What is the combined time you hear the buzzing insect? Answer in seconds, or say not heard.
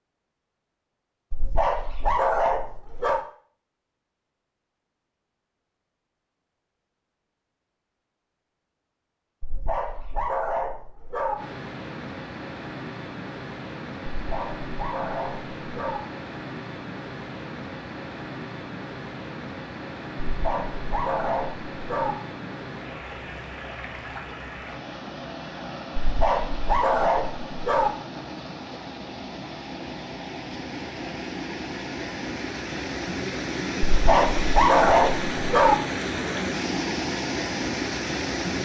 not heard.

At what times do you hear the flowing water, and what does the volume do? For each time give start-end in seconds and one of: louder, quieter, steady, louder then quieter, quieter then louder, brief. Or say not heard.
11.3-38.6 louder.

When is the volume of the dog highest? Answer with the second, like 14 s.
35 s.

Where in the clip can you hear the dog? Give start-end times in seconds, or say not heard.
1.3-3.2, 9.4-11.3, 14.2-16.0, 20.3-22.1, 26.0-27.9, 33.9-35.8.